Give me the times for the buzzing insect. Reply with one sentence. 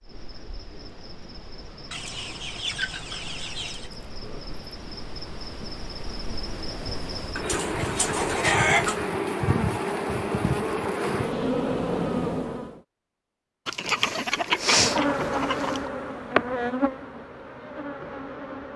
The buzzing insect can be heard from 0.0 to 12.8 s and from 14.4 to 18.7 s.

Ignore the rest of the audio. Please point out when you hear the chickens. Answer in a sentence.
You can hear the chickens from 1.9 to 3.9 s, from 7.3 to 9.1 s and from 13.7 to 15.9 s.